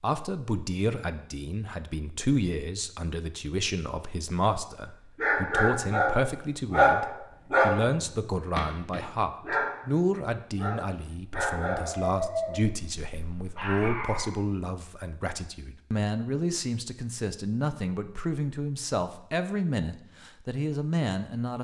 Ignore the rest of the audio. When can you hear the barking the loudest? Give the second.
7 s.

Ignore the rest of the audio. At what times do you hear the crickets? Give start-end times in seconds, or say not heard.
not heard.